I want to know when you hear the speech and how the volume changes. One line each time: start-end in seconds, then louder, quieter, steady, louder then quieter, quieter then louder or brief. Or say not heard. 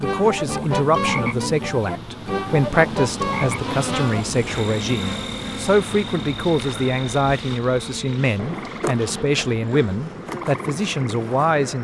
0.0-11.7 steady.